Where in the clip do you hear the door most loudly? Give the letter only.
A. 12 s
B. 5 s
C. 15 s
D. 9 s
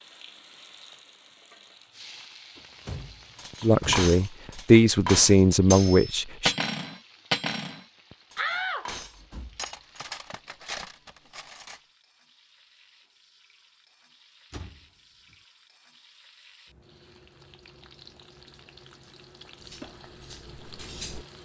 D.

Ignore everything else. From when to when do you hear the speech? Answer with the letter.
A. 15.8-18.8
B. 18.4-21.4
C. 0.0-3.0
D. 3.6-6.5
D.